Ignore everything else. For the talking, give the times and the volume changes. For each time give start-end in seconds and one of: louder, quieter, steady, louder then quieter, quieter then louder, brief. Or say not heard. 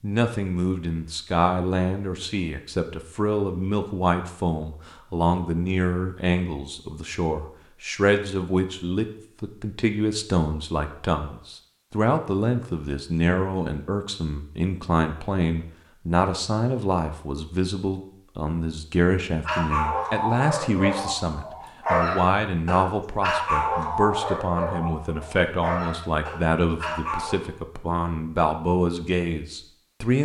0.0-30.2 steady.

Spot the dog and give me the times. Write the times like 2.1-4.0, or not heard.
19.4-27.4.